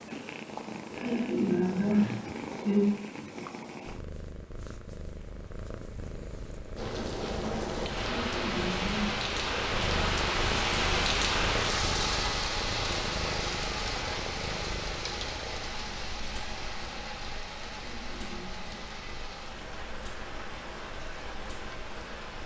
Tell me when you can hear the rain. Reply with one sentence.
The rain can be heard from 6.8 to 22.4 s.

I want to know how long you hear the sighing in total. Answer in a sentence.
You can hear the sighing for 4 seconds altogether.